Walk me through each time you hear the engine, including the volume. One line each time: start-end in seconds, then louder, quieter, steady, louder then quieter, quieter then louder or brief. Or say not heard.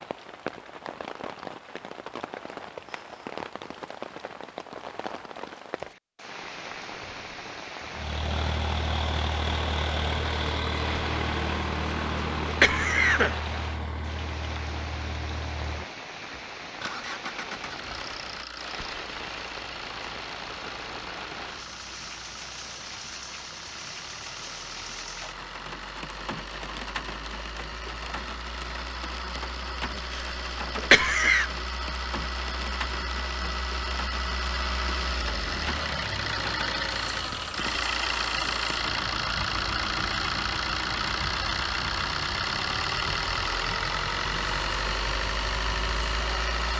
7.8-46.7 quieter then louder.